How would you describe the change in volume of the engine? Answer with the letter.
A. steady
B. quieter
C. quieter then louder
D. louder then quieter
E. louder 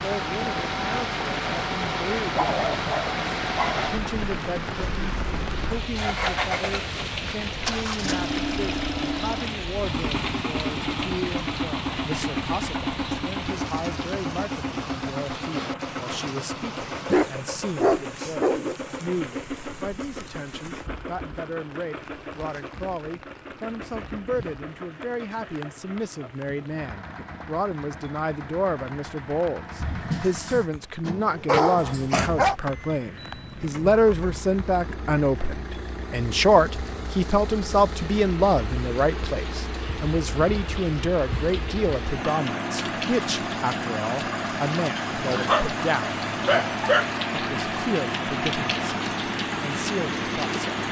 C.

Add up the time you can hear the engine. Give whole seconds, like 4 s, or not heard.
51 s.